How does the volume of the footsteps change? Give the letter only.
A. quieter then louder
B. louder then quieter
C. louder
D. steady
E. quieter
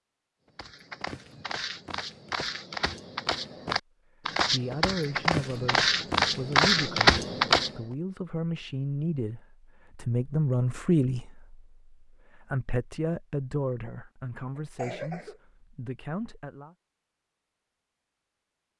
C.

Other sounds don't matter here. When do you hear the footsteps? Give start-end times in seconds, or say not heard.
0.6-7.7.